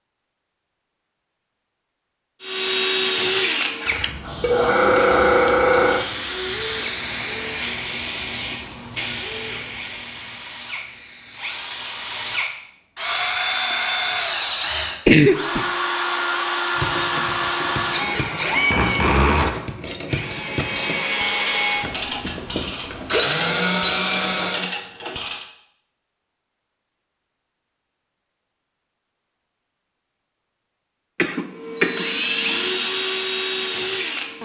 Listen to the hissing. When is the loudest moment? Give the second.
5 s.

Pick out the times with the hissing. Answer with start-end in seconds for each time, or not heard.
4.2-12.4.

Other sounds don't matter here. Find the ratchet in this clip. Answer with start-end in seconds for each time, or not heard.
16.7-25.4.